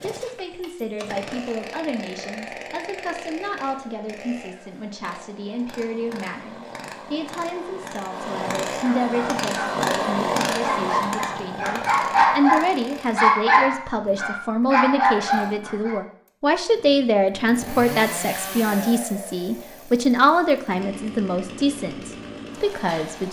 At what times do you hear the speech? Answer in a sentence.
You can hear the speech from 0.0 to 23.2 s.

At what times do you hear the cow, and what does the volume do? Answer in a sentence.
You can't hear the cow here.